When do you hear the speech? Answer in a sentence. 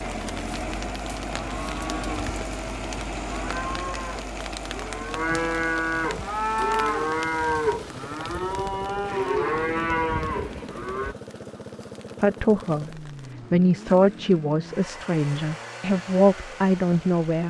You can hear the speech from 12.2 to 12.9 s and from 13.5 to 17.4 s.